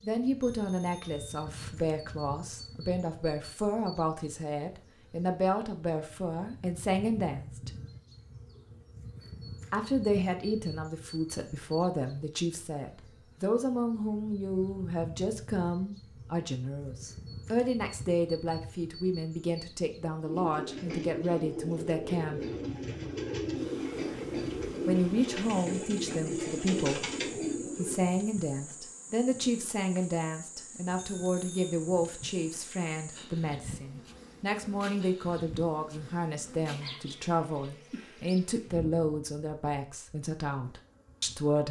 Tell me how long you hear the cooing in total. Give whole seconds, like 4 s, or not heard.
8 s.